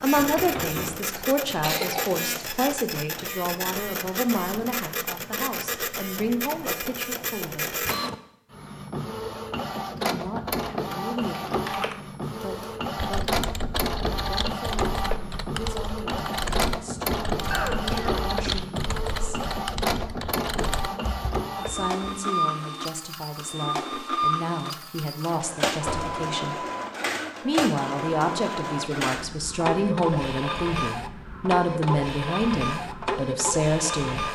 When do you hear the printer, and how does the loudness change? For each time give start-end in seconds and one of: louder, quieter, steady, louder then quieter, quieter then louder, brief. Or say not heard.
0.0-34.2 steady.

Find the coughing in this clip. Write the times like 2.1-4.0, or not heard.
1.1-2.6, 17.5-18.6.